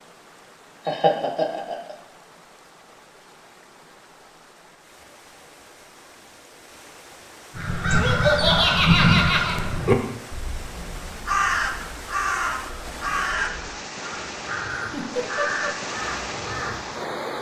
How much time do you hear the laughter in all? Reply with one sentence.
You can hear the laughter for 4 seconds altogether.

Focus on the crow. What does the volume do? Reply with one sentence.
The loudness of the crow goes down.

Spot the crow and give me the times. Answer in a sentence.
You can hear the crow from 7.5 to 16.9 s.